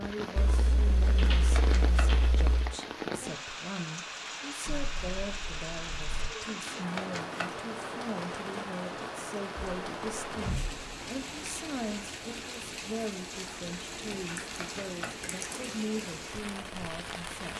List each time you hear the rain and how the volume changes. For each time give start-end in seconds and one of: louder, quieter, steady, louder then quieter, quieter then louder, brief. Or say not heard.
0.0-17.5 steady.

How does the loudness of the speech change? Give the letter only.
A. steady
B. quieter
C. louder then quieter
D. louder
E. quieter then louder
A.